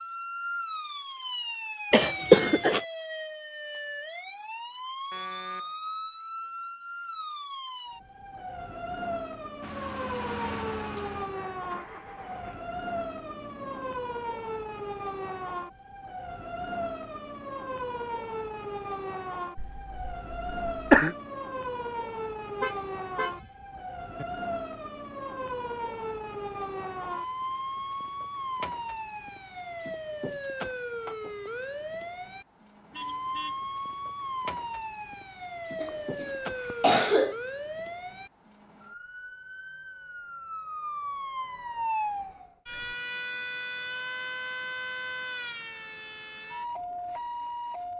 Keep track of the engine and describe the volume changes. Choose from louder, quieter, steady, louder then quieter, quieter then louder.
quieter.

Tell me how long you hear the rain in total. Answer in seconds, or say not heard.
not heard.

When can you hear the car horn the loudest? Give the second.
23 s.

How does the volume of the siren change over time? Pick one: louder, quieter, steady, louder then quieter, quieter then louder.
steady.